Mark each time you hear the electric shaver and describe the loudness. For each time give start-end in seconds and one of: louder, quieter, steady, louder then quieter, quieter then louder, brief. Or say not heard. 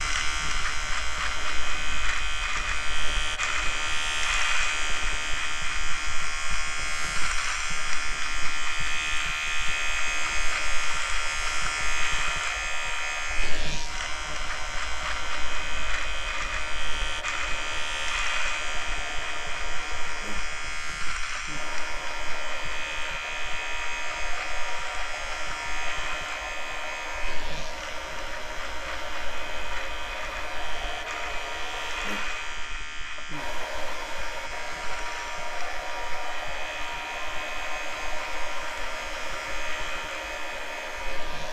0.0-41.4 quieter.